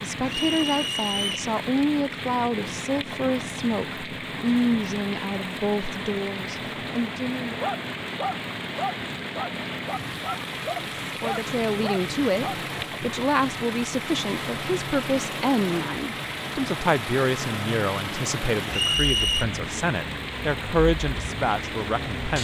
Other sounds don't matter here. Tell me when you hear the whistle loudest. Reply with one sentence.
The volume of the whistle peaks at 19 seconds.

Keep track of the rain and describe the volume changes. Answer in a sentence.
The loudness of the rain stays about the same.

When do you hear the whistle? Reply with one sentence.
The whistle can be heard from 0.2 to 1.4 s and from 18.7 to 19.4 s.